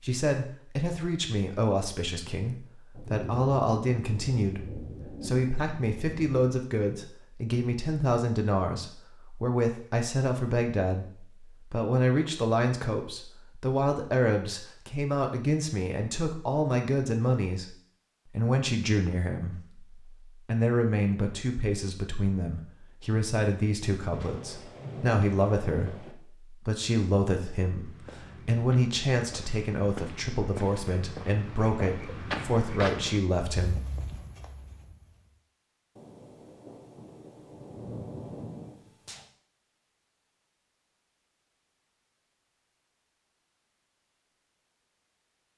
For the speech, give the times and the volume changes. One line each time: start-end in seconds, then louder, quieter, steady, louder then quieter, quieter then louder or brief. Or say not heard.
0.0-17.8 steady
18.4-33.8 steady.